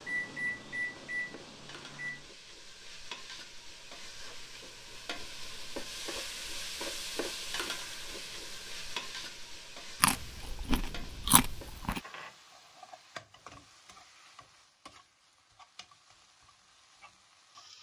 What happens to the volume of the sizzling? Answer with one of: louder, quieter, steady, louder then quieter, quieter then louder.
louder then quieter.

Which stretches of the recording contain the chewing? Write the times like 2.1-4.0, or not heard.
10.0-12.0.